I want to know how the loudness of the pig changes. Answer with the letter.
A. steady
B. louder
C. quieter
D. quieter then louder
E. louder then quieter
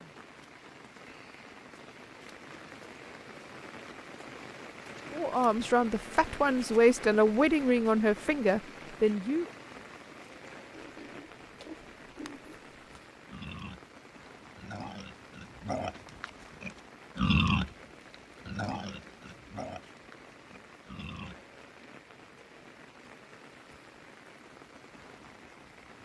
E.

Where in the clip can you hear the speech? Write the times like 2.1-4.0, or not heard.
5.1-9.4.